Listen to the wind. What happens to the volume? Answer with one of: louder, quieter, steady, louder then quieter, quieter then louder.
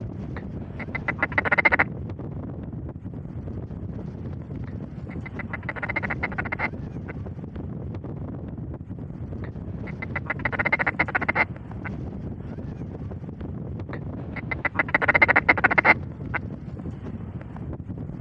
steady.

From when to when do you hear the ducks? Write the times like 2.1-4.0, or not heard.
0.3-1.9, 4.7-7.2, 9.4-11.9, 13.9-16.4.